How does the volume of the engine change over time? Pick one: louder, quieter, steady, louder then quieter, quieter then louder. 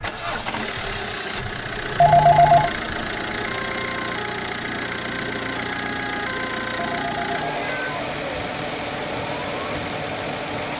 steady.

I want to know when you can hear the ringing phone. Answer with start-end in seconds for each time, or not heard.
2.0-2.7, 6.8-7.7.